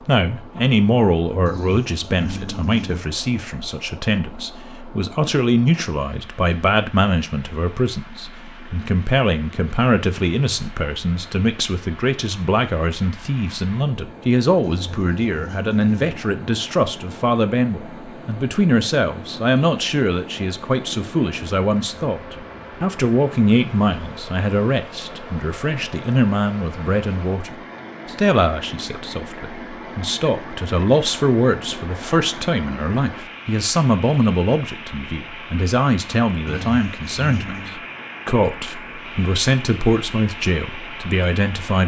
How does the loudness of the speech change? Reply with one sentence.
The volume of the speech stays about the same.